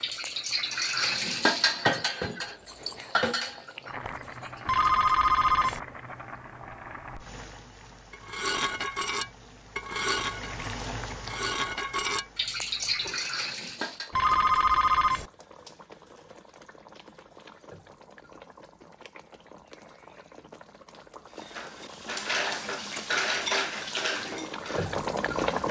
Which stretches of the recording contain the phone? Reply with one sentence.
The phone can be heard from 4.7 to 5.8 s and from 14.1 to 15.3 s.